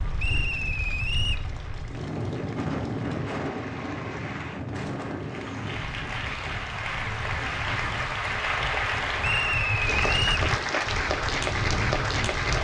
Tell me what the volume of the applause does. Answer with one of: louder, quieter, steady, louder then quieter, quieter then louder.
louder.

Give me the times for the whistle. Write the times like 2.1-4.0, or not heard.
0.1-1.4, 9.2-10.4.